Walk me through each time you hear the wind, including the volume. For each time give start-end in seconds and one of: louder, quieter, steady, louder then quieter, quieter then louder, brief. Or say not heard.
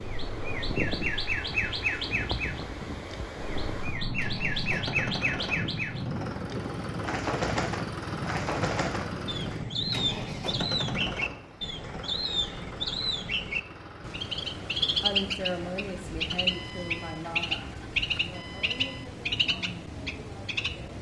0.0-11.2 steady.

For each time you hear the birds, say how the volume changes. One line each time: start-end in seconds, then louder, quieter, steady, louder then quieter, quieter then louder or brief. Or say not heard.
0.0-20.9 steady.